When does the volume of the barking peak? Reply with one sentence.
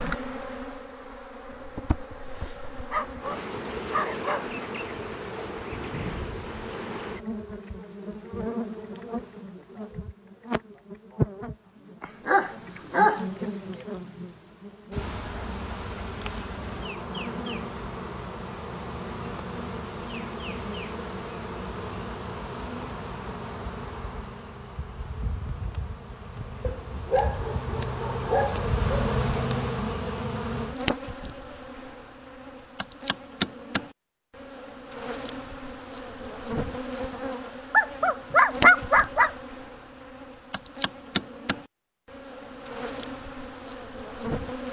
The volume of the barking peaks at 39 seconds.